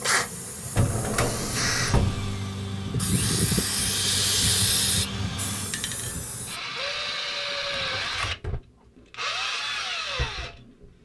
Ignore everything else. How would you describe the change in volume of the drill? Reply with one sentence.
The volume of the drill goes down, then up.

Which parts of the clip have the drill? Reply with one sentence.
You can hear the drill from 0.0 to 10.9 s.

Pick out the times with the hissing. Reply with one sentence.
The hissing can be heard from 0.0 to 6.6 s.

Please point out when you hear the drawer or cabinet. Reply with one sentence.
You can hear the drawer or cabinet from 0.8 to 2.3 s and from 7.5 to 8.6 s.